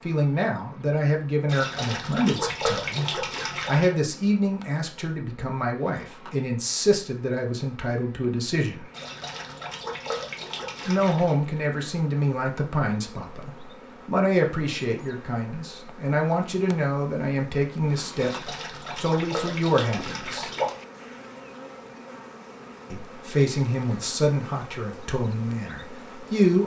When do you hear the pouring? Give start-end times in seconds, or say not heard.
1.4-4.0, 8.9-11.4, 18.1-20.8.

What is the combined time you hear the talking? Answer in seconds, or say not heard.
22 s.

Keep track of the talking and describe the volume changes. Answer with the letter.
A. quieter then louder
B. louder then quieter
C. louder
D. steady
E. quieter
D.